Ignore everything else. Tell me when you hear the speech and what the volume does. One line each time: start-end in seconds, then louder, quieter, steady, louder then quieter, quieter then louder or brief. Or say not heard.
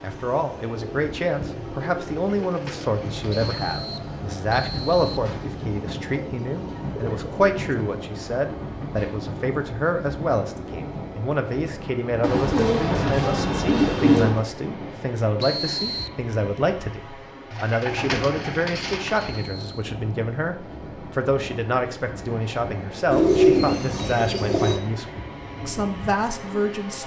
0.0-27.0 steady.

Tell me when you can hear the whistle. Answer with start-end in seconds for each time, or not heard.
3.3-5.2, 15.4-16.1, 19.3-19.9.